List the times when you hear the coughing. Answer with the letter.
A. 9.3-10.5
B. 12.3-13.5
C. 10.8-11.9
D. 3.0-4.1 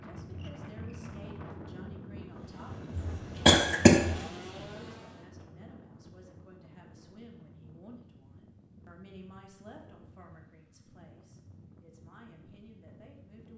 D.